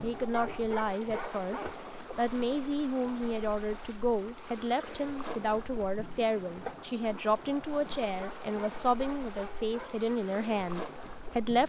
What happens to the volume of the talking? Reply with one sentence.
The volume of the talking stays about the same.